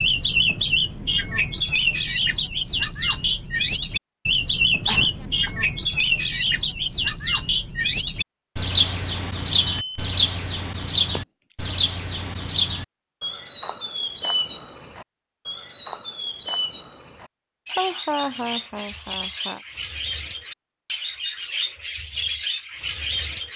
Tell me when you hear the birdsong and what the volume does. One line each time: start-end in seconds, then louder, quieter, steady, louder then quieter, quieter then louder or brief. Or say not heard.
0.0-23.5 quieter.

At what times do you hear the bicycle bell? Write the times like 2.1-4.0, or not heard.
9.5-10.1.